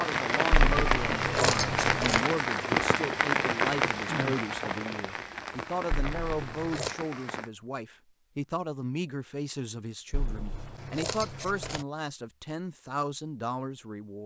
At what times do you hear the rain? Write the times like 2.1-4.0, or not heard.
0.0-7.5.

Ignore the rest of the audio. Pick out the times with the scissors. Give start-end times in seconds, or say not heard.
0.5-2.2, 5.9-7.0, 10.1-11.8.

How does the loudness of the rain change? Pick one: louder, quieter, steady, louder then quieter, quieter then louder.
quieter.